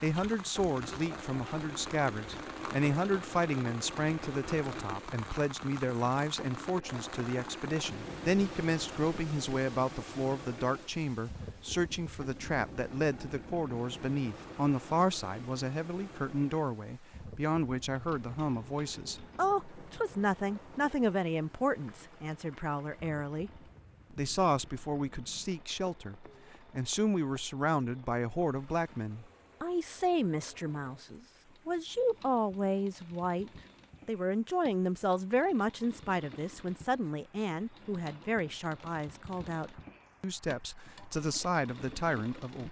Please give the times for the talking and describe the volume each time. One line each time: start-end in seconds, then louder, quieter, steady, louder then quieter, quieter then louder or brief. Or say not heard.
0.0-42.6 steady.